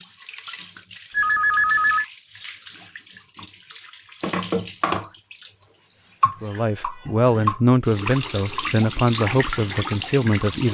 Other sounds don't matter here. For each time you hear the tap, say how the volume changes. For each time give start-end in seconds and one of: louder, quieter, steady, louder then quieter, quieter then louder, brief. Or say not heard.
0.0-10.6 louder.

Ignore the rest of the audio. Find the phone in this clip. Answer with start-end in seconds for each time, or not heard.
1.1-2.0.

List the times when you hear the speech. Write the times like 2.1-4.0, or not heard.
6.4-10.6.